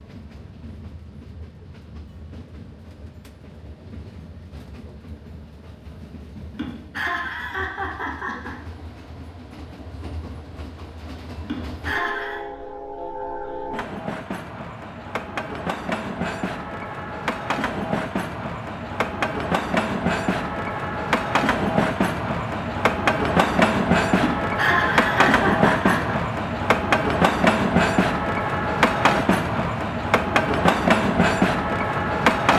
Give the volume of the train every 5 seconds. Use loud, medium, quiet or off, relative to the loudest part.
quiet, quiet, quiet, medium, loud, loud, loud.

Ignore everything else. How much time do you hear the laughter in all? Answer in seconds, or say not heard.
5 s.